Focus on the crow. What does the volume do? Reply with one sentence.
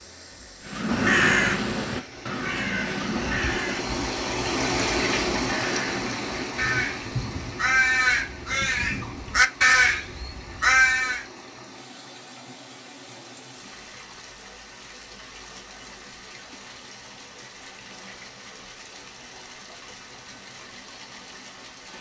The volume of the crow goes down, then up.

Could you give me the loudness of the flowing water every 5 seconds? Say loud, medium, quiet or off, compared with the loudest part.
loud, loud, quiet, quiet, quiet.